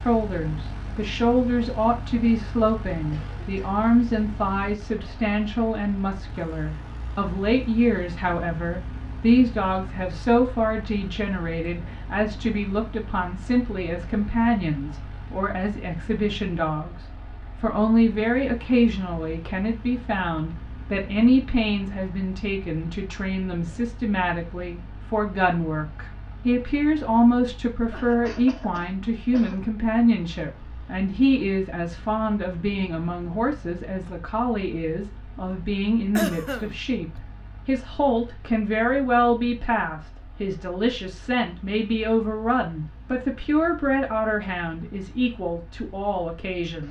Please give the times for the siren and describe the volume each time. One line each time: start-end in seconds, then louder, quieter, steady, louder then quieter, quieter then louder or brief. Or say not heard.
not heard.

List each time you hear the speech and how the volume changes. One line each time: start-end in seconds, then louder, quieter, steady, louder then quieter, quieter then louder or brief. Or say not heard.
0.0-46.8 steady.